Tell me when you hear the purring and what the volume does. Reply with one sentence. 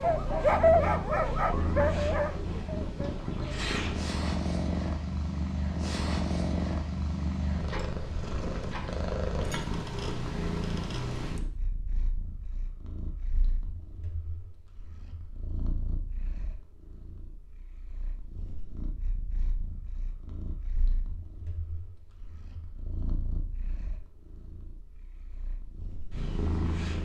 You can hear the purring from 0.0 to 27.0 s, getting quieter then louder.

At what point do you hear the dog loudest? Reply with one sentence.
The volume of the dog peaks at 1 second.